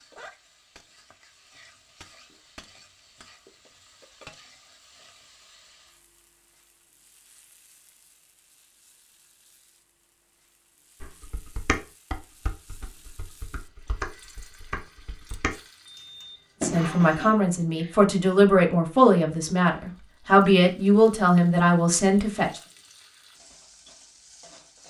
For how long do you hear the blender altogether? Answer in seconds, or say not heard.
not heard.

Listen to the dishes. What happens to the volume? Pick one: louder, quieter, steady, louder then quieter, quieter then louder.
quieter then louder.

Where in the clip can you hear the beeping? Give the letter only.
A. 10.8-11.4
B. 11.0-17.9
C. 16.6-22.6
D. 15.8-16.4
D.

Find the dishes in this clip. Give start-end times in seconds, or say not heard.
11.0-17.9.